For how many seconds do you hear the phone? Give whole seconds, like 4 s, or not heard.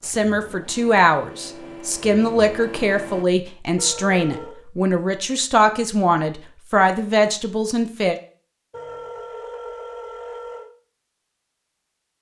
3 s.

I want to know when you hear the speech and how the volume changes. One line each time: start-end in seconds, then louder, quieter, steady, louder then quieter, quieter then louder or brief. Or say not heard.
0.0-8.2 steady.